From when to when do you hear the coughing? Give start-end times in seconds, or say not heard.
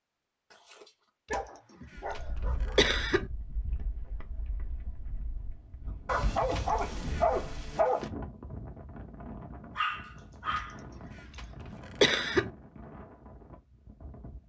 1.3-3.3, 6.5-7.3, 10.6-12.5.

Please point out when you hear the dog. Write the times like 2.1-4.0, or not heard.
0.5-2.8, 6.0-8.1, 9.8-10.8.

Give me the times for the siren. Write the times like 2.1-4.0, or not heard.
not heard.